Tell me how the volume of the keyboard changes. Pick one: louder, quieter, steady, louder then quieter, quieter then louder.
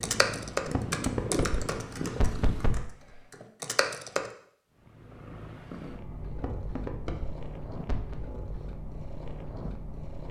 quieter then louder.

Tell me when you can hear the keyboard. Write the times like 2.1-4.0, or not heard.
0.0-4.3.